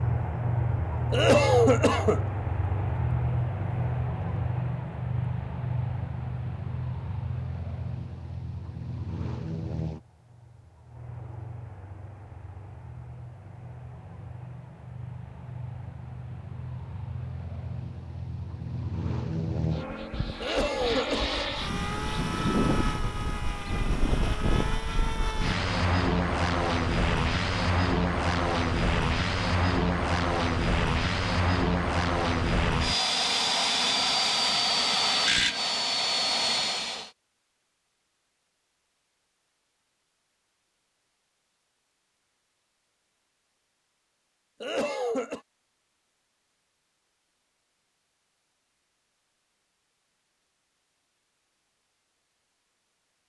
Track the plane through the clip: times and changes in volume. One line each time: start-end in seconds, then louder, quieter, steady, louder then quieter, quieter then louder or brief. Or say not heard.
0.0-37.1 quieter then louder.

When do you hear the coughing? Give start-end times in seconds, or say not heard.
1.1-2.2, 20.4-21.4, 44.6-45.4.